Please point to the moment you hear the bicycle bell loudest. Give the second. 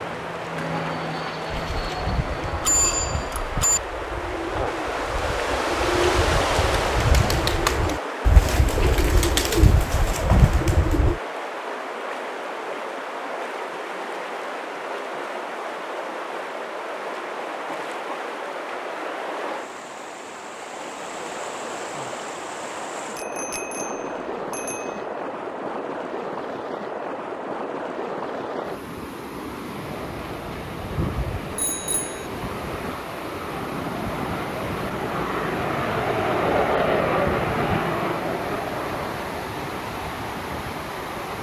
3 s.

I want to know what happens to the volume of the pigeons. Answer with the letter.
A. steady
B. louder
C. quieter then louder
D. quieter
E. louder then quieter
B.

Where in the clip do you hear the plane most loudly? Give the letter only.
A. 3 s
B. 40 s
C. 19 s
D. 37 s
D.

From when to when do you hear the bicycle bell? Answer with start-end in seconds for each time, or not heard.
2.6-3.8, 23.1-24.9, 31.5-32.2.